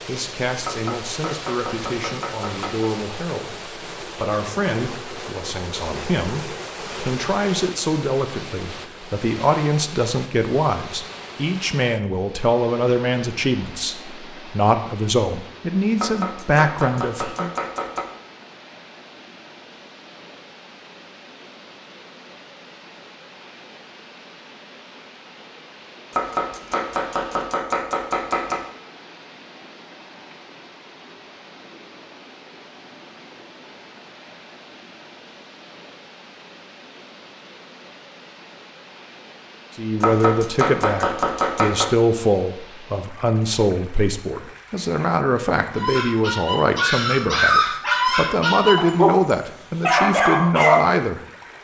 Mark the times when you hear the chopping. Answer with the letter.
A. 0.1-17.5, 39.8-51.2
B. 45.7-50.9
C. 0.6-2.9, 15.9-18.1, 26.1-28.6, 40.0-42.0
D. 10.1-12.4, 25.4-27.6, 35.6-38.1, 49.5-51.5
C.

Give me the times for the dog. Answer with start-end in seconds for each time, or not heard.
45.7-50.9.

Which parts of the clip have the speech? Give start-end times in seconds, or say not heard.
0.1-17.5, 39.8-51.2.